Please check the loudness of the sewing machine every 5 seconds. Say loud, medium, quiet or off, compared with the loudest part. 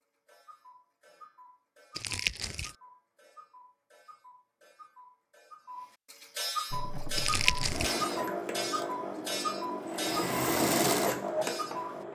off, medium, loud.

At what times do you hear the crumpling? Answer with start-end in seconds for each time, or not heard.
1.9-2.8, 7.2-8.0.